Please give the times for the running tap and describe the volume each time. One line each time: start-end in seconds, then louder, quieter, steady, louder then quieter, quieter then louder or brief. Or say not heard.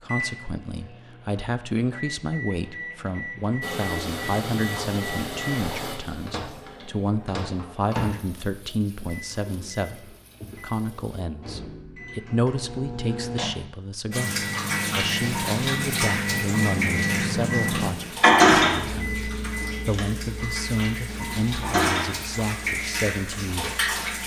3.6-11.2 quieter
14.1-24.2 quieter then louder.